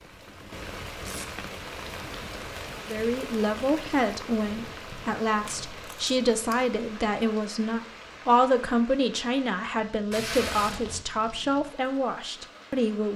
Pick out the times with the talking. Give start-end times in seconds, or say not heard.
2.8-13.1.